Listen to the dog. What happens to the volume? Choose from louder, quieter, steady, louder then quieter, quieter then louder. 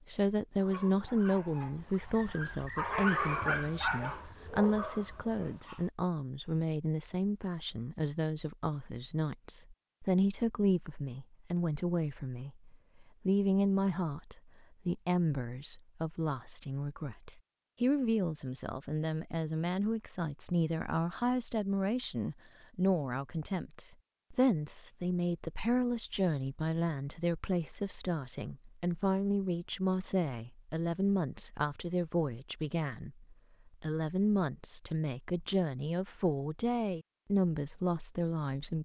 louder then quieter.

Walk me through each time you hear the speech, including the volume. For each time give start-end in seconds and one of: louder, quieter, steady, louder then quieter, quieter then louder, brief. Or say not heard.
0.1-38.8 steady.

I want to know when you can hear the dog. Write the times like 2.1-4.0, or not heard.
0.6-5.9.